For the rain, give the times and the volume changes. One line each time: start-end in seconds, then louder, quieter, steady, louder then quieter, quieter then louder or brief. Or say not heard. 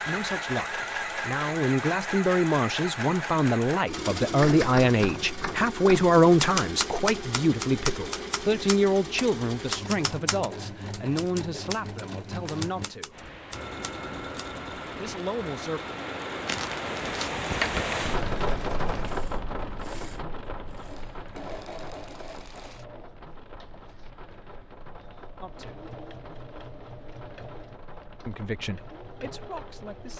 13.1-30.1 louder then quieter.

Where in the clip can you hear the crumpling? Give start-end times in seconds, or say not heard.
16.4-18.0.